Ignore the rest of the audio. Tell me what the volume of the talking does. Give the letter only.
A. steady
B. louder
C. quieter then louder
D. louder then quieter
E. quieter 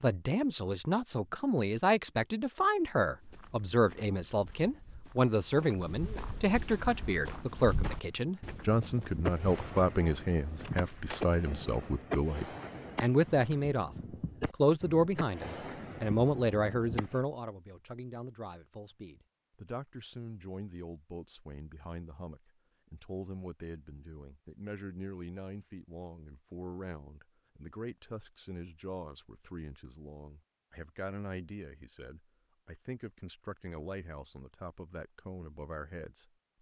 E.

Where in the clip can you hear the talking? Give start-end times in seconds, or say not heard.
0.0-36.5.